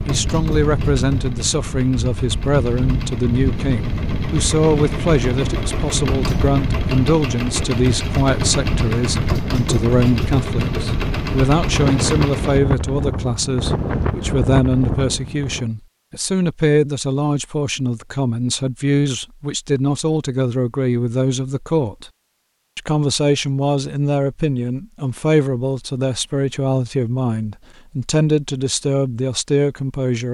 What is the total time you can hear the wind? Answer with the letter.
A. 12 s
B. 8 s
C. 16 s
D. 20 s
C.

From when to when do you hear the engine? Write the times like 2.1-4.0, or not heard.
0.0-12.6.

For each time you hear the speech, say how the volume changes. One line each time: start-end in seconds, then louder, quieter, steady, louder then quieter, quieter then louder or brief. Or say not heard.
0.1-22.1 steady
22.8-30.3 steady.